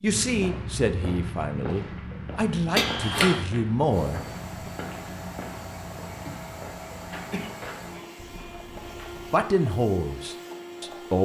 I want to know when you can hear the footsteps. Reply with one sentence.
The footsteps can be heard from 0.1 to 9.3 s.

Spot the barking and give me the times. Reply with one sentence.
You can't hear the barking here.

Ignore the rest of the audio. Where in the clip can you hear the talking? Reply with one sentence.
The talking can be heard from 0.0 to 4.7 s and from 9.3 to 11.2 s.